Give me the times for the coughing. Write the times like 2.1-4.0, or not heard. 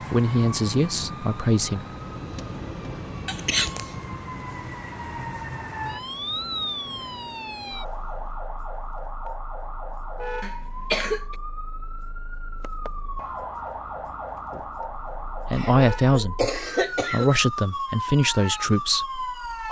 3.2-3.9, 10.4-11.3, 15.5-17.3.